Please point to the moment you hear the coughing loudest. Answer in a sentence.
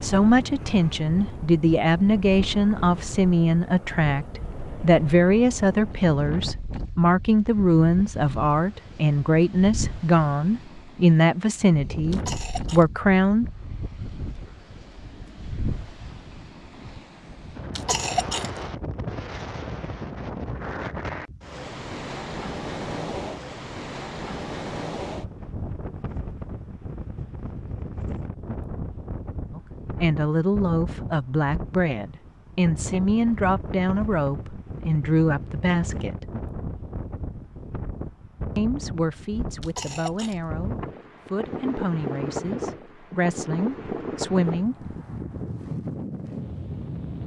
The loudest moment of the coughing is at 18 seconds.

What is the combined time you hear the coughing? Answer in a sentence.
The coughing can be heard for 2 seconds in total.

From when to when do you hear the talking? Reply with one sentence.
You can hear the talking from 0.0 to 13.4 s, from 29.6 to 36.2 s and from 38.5 to 44.8 s.